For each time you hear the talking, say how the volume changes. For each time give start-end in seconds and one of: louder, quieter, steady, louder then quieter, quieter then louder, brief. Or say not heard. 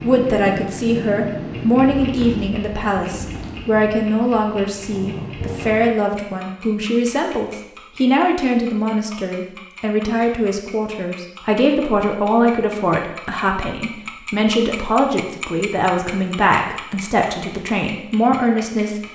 0.0-19.0 steady.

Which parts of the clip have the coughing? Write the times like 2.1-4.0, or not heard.
not heard.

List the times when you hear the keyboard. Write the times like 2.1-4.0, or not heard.
not heard.